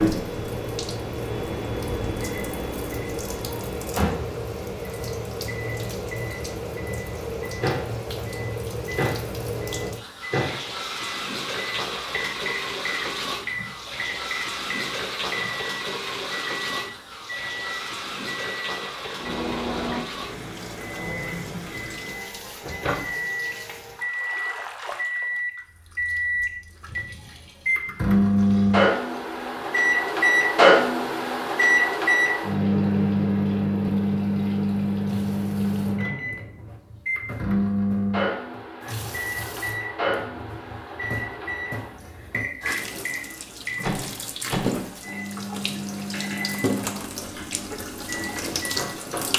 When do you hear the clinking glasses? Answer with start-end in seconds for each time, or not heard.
not heard.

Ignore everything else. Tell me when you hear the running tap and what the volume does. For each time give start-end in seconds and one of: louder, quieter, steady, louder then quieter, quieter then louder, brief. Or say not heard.
0.0-49.3 quieter then louder.